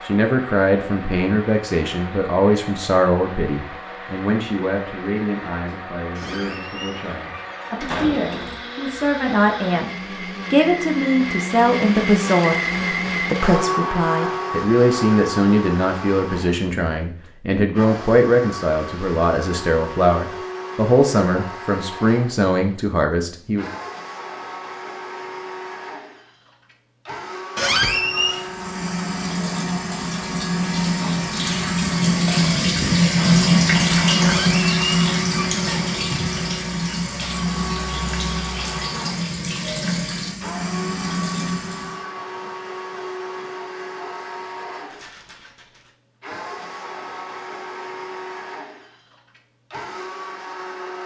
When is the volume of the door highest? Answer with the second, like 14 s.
28 s.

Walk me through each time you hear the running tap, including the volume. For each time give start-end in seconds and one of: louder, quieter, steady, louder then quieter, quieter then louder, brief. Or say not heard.
28.2-42.0 louder then quieter.